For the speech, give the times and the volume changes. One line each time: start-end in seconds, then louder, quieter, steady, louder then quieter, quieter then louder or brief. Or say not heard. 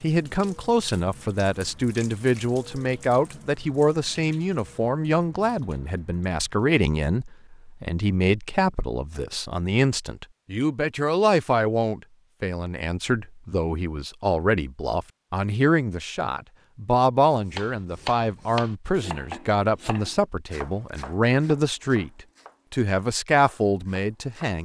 0.0-24.6 steady.